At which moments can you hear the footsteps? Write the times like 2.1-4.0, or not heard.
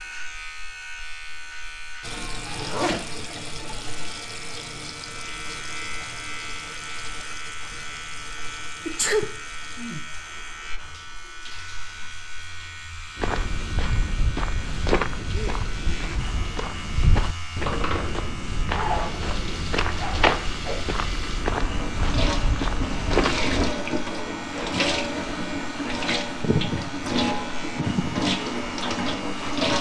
13.2-23.8.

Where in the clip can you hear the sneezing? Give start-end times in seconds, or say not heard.
8.8-9.3.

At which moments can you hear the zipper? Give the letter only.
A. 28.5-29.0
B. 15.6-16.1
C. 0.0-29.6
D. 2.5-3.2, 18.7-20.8
D.